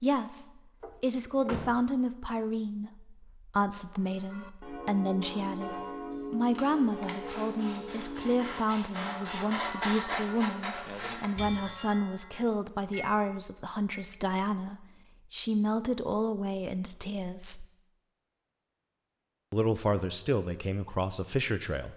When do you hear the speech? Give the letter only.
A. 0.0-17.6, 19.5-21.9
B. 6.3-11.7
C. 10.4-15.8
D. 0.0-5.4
A.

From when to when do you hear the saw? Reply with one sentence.
You can hear the saw from 6.3 to 11.7 s.